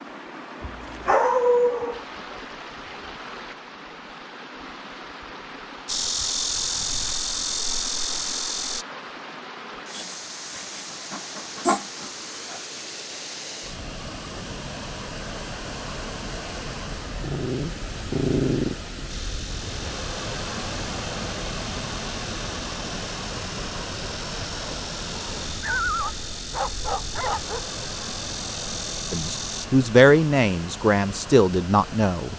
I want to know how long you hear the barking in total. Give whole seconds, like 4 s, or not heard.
8 s.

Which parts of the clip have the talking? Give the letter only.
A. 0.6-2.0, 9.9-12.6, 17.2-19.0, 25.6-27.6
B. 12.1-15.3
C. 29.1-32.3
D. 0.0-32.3
C.